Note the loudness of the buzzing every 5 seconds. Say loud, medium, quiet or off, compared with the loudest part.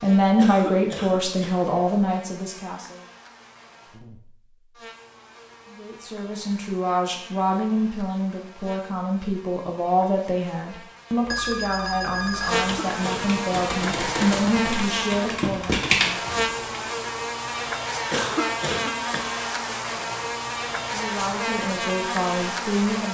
quiet, quiet, loud, loud, loud.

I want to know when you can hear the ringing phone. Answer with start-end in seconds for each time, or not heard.
11.2-12.9.